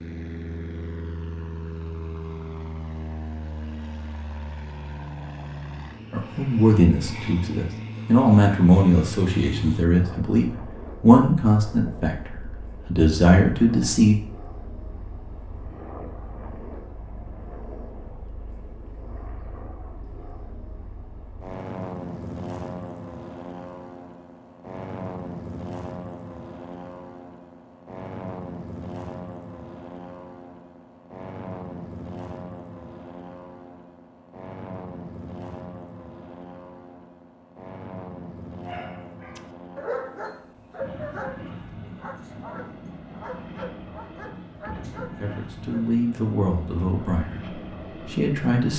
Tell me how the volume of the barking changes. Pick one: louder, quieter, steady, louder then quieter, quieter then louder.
quieter.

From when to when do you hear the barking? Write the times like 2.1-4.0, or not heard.
38.6-45.9.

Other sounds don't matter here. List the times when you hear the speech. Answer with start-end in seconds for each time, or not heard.
6.1-14.2, 45.0-48.7.